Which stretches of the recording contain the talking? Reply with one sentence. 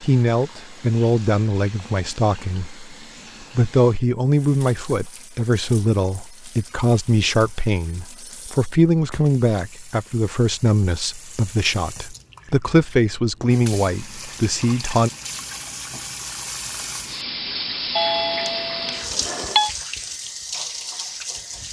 The talking can be heard from 0.0 to 2.9 s and from 3.5 to 15.1 s.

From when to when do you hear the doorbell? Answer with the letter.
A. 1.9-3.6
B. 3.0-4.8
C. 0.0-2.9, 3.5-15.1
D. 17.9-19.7
D.